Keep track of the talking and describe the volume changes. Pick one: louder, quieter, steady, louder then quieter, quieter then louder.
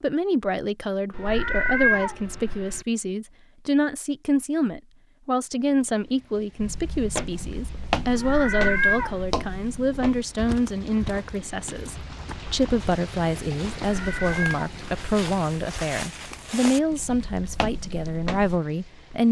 steady.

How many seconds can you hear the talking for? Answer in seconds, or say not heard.
19 s.